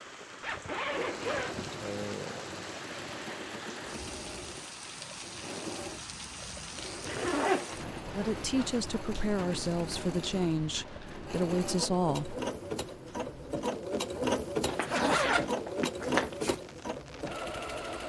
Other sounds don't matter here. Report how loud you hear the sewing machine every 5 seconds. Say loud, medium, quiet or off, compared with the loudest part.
medium, medium, loud, loud.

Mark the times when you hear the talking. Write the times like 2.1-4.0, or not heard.
8.2-12.3.